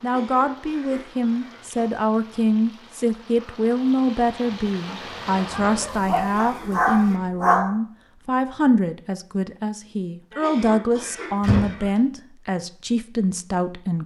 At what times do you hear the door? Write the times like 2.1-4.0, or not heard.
10.9-11.8.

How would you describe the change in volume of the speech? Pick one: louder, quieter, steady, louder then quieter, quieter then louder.
steady.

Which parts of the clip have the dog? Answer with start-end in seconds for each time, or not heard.
4.8-7.7.